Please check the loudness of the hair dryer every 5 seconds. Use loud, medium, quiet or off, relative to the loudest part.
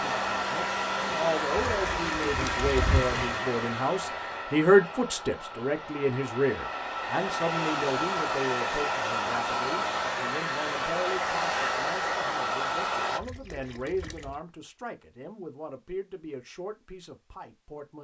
loud, loud, loud, off.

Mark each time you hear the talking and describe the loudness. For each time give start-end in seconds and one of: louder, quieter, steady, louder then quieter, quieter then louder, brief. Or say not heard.
0.0-17.9 louder then quieter.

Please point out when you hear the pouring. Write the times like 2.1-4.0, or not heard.
1.6-3.2, 13.2-14.4.